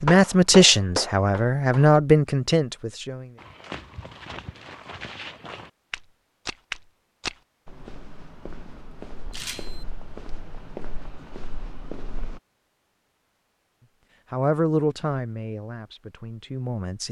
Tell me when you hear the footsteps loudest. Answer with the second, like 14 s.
7 s.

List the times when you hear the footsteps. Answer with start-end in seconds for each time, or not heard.
3.4-12.4.